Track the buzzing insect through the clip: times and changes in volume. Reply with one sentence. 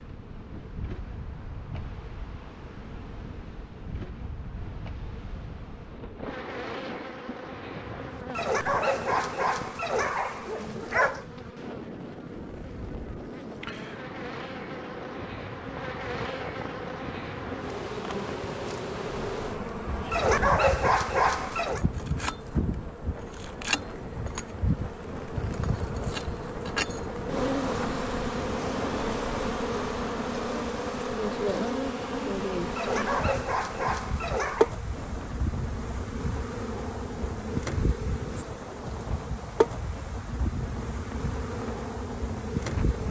The buzzing insect can be heard from 0.0 to 43.0 s, getting louder.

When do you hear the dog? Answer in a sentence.
You can hear the dog from 8.3 to 11.2 s, from 20.1 to 21.8 s and from 32.8 to 34.8 s.